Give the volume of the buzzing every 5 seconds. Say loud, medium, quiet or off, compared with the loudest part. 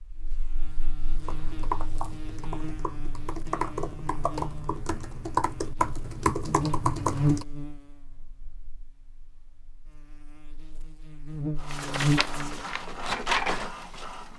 medium, loud, loud.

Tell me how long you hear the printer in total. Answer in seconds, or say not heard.
3 s.